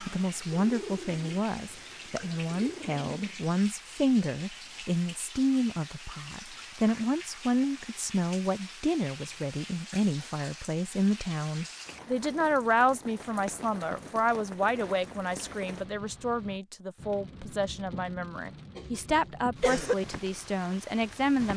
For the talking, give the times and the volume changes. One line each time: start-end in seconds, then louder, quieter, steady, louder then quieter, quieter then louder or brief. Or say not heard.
0.0-21.5 steady.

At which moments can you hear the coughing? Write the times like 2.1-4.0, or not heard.
18.8-19.9.